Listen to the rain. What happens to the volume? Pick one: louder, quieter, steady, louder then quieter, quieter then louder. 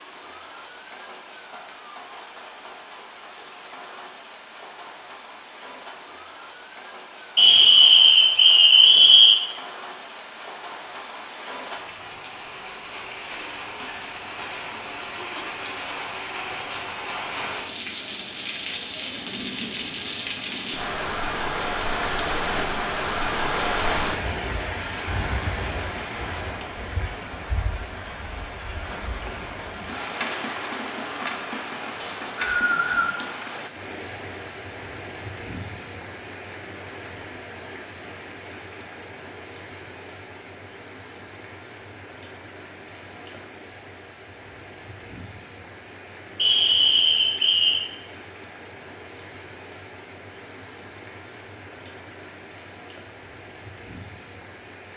louder then quieter.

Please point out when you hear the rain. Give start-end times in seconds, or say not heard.
0.0-54.9.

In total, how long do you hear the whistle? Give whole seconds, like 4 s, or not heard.
5 s.